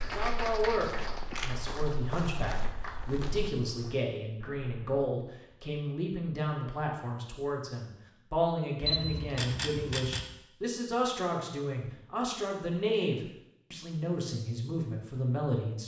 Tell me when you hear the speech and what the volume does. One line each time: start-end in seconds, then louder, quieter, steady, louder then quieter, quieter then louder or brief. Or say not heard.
0.0-15.8 steady.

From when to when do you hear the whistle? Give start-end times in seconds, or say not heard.
not heard.